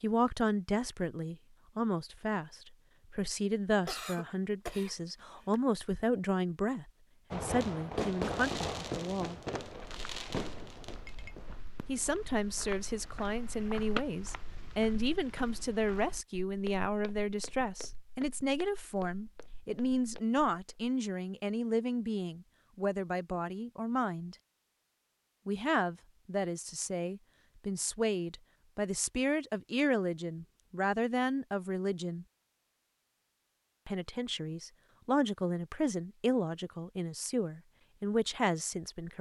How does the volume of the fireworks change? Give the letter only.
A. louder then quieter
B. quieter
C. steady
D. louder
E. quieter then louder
B.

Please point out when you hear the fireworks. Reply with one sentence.
The fireworks can be heard from 7.3 to 14.1 s.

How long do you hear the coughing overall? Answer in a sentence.
The coughing can be heard for 2 seconds in total.